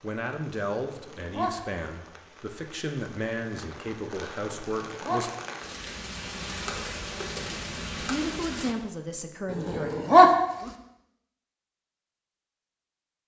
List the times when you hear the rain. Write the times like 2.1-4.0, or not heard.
0.0-8.8.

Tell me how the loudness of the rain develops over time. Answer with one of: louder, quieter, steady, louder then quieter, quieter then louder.
louder.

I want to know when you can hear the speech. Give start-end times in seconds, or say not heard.
0.0-5.3, 8.0-9.9.